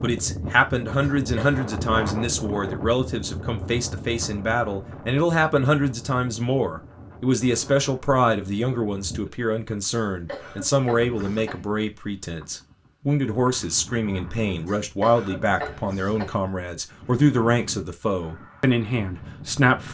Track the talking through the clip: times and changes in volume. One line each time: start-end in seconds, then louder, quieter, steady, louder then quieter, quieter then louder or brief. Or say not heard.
0.0-19.8 steady.